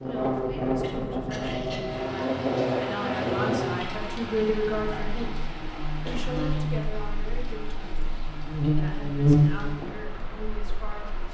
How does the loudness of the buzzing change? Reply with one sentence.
The loudness of the buzzing goes down, then up.